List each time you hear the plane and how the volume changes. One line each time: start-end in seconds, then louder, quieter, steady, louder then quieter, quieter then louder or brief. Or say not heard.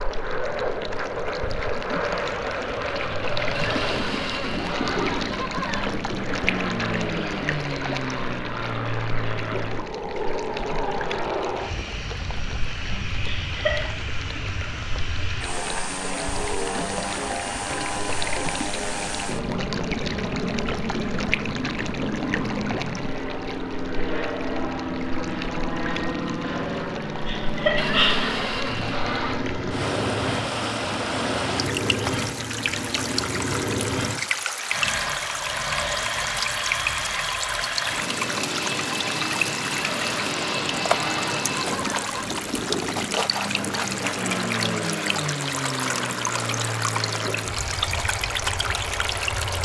0.0-49.5 steady.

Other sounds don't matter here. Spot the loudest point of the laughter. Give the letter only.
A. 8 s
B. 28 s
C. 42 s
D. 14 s
B.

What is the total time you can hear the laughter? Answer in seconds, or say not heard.
2 s.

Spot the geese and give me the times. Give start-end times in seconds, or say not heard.
3.5-6.0, 27.8-29.4, 39.7-42.3.